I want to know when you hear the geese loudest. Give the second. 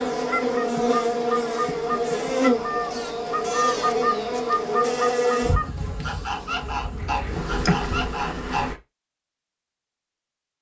4 s.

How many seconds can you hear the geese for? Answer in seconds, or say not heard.
9 s.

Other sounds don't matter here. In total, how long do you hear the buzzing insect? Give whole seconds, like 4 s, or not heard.
9 s.